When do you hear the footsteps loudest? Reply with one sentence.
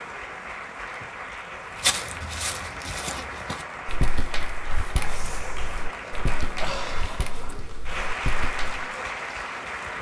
The volume of the footsteps peaks at 2 seconds.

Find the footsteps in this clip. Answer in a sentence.
You can hear the footsteps from 1.8 to 8.8 s.